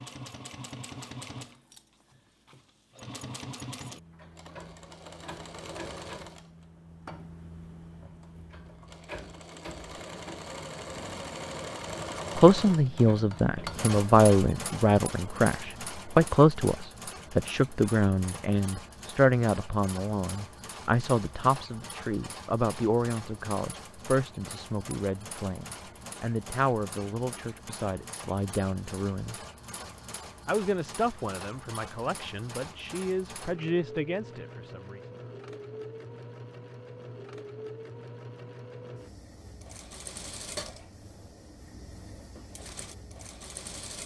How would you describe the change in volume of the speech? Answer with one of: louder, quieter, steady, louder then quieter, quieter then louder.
quieter.